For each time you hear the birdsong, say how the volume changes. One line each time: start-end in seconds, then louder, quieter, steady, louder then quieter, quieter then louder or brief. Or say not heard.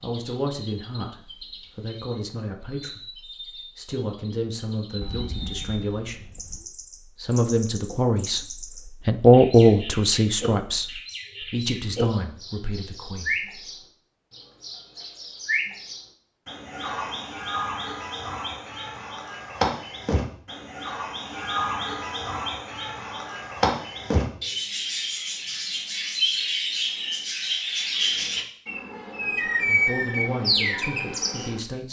0.0-31.8 louder.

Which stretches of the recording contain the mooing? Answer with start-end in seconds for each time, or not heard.
5.0-6.7.